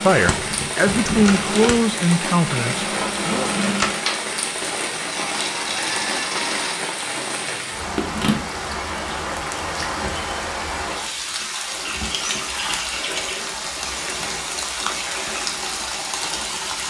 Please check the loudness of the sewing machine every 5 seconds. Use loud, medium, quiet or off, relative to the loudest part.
loud, loud, off, off.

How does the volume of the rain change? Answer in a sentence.
The volume of the rain stays about the same.